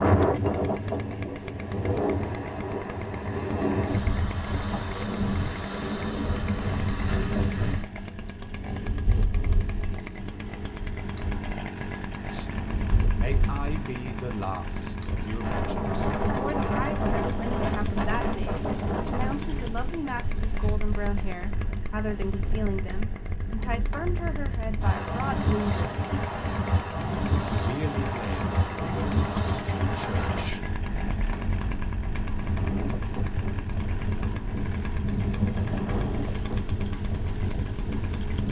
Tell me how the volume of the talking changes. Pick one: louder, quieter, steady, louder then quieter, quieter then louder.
steady.